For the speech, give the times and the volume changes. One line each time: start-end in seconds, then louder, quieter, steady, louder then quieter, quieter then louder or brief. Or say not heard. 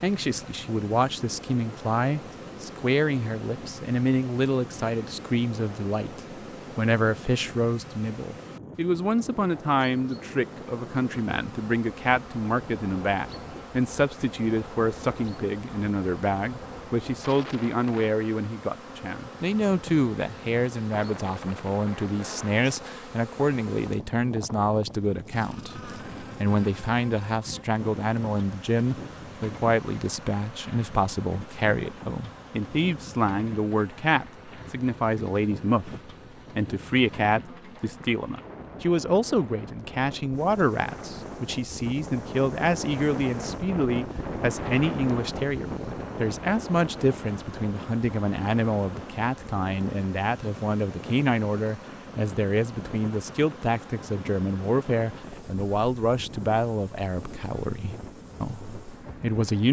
0.0-59.6 steady.